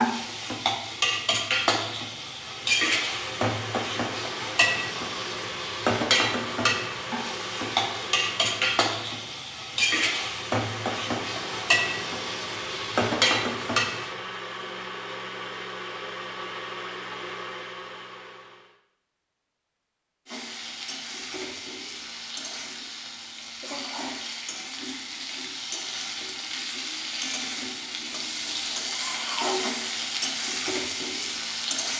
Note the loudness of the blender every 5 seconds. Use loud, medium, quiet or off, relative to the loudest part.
loud, loud, loud, loud, off, off, off.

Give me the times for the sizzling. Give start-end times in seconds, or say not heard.
0.0-14.2, 20.2-31.9.